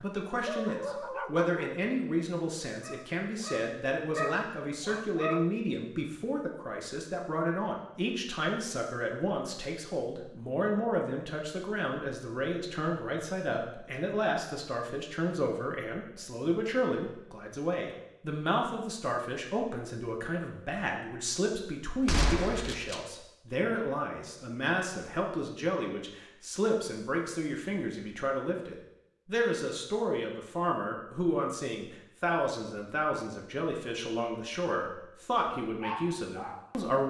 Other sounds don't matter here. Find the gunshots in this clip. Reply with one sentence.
The gunshots can be heard from 22.1 to 23.0 s.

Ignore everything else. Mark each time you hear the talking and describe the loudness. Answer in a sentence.
The talking can be heard from 0.0 to 37.0 s, at a steady volume.